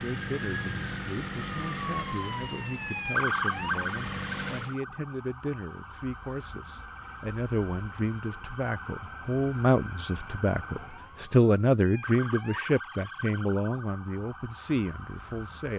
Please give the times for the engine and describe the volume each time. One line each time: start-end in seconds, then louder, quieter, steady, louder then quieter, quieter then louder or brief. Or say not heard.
0.0-4.8 quieter then louder.